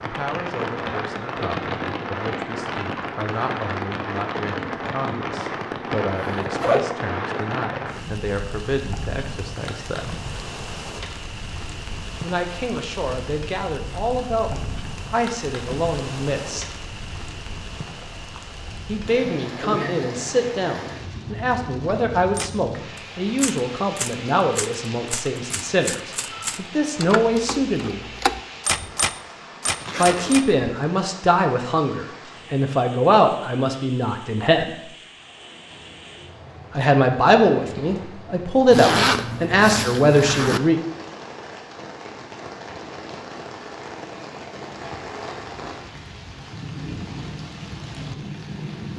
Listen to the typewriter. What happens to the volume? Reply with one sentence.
The volume of the typewriter goes up.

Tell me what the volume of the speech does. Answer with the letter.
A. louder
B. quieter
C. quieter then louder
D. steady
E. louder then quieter
A.